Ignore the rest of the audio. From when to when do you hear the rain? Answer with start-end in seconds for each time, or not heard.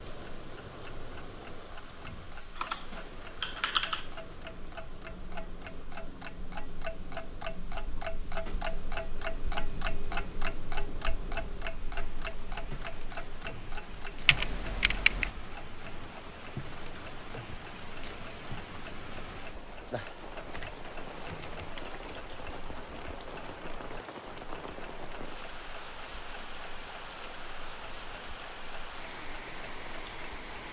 0.0-30.6.